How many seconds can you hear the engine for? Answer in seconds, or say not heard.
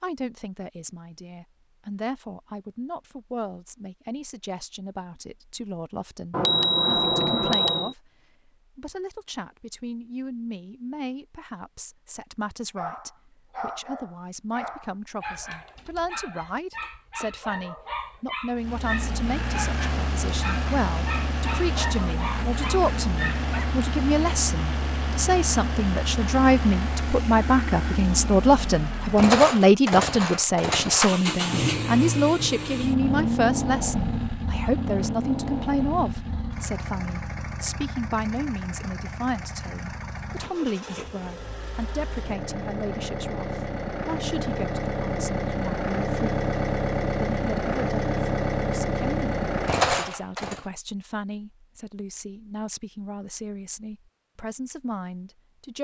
32 s.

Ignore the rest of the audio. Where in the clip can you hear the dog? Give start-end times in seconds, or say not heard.
12.8-23.7.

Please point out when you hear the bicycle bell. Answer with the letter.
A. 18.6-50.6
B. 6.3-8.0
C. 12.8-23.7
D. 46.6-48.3
B.